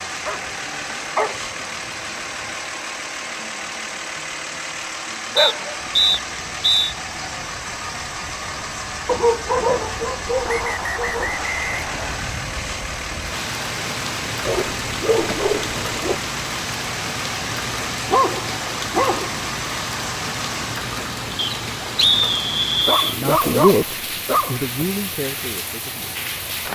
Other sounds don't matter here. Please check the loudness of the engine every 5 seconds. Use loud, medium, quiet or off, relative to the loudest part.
loud, loud, loud, loud, loud, medium.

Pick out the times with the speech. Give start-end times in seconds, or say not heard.
23.1-26.4.